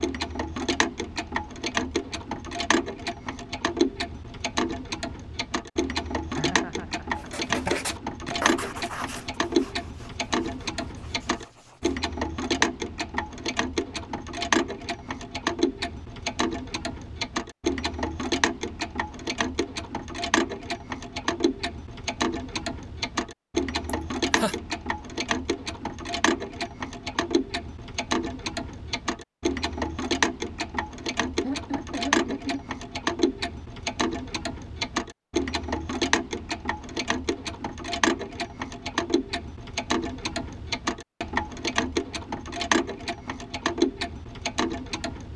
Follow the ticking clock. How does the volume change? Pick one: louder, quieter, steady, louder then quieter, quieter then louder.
steady.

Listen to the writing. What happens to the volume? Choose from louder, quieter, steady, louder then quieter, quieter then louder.
quieter.